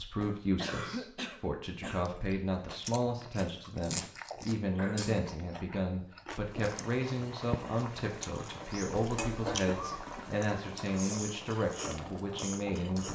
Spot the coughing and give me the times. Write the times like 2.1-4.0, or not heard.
0.6-2.0, 4.8-5.2, 9.1-10.3.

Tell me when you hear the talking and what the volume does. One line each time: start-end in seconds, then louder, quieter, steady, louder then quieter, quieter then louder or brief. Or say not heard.
0.0-13.1 steady.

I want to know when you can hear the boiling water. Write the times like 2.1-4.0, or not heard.
6.5-13.1.